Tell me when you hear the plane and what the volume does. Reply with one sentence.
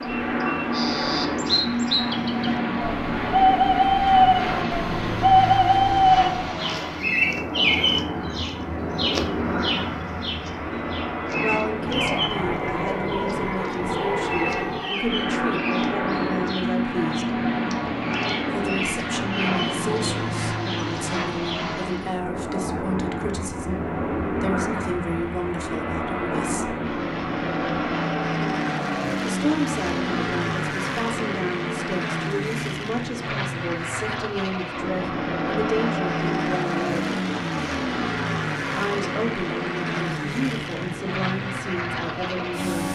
The plane can be heard from 0.0 to 42.9 s, at a steady volume.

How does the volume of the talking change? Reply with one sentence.
The loudness of the talking stays about the same.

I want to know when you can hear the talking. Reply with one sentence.
The talking can be heard from 11.4 to 17.4 s, from 18.4 to 26.8 s, from 29.2 to 37.1 s and from 38.7 to 42.8 s.